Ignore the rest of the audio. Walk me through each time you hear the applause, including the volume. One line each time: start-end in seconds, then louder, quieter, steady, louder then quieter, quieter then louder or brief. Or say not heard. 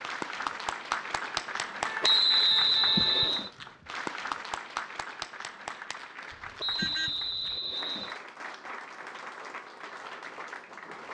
0.0-11.0 quieter.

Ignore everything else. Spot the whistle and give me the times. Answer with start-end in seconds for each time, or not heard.
2.0-3.5, 6.6-8.2.